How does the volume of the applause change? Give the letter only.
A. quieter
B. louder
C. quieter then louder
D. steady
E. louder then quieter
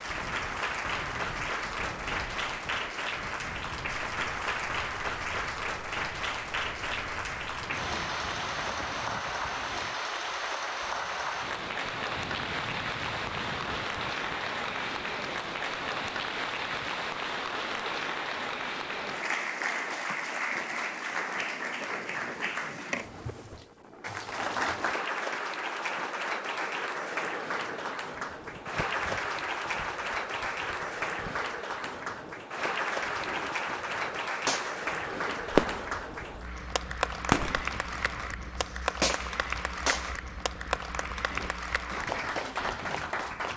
D.